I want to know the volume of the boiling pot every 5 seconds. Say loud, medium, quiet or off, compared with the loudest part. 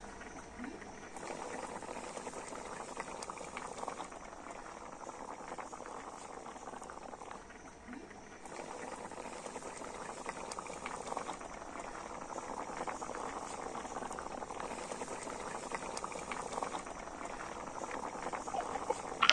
loud, medium, loud, loud.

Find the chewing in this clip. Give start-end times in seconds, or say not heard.
17.3-19.2.